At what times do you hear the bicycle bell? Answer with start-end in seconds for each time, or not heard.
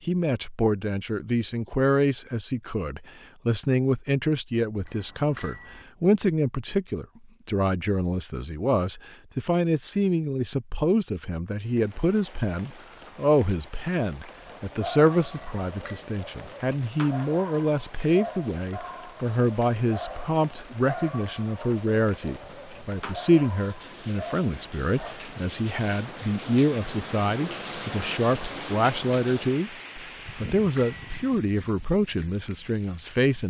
4.8-5.8, 15.3-16.0, 30.2-31.2.